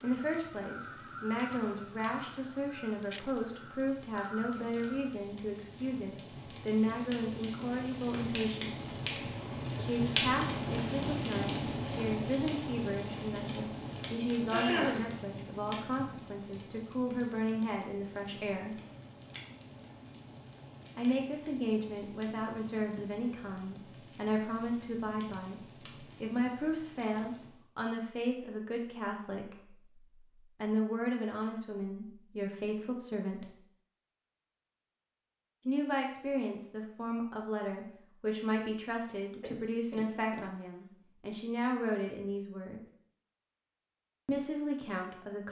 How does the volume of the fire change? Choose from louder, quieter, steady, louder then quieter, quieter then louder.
louder then quieter.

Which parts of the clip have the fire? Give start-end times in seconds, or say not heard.
0.0-27.6.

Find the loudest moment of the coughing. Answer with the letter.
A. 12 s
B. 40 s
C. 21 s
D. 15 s
D.